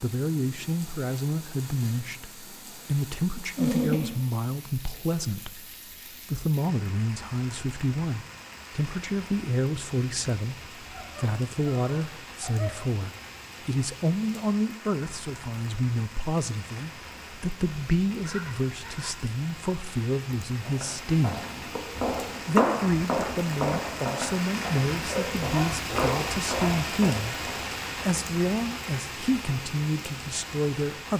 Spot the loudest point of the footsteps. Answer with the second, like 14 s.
23 s.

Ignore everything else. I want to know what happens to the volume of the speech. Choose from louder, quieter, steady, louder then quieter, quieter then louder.
steady.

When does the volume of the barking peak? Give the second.
4 s.